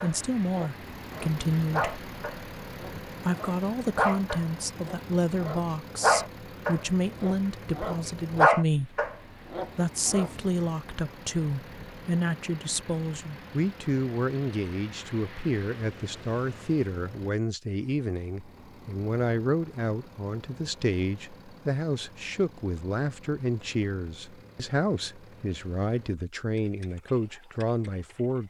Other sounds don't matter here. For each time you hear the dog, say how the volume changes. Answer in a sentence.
The dog can be heard from 0.0 to 10.3 s, getting louder.